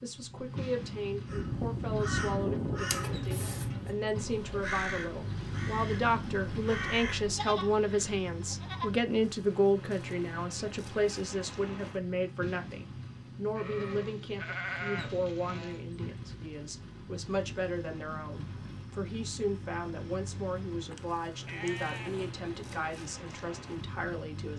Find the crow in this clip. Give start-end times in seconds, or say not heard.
1.2-7.3.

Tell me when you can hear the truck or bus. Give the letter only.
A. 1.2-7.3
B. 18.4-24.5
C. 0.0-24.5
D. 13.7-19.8
C.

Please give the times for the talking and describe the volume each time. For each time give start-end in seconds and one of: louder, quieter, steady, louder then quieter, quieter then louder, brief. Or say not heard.
0.0-24.5 louder then quieter.